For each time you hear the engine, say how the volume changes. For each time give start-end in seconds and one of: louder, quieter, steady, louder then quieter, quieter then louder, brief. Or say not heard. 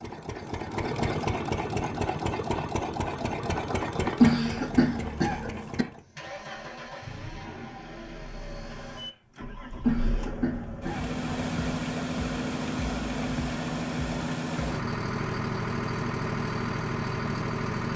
0.0-17.9 quieter then louder.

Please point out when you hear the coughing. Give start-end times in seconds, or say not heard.
4.2-5.8, 9.8-11.1.